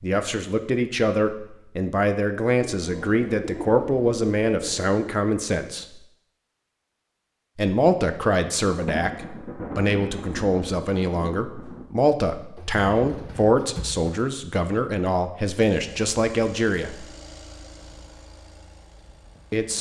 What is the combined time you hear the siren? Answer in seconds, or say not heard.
not heard.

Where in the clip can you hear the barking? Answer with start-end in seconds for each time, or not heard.
not heard.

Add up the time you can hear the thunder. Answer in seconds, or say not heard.
3 s.